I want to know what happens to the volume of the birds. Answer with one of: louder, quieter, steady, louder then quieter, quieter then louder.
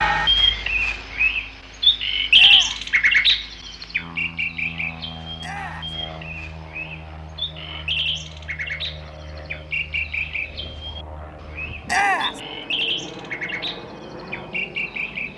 quieter.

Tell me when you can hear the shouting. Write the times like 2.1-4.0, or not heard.
2.3-2.9, 5.4-6.0, 11.8-12.4.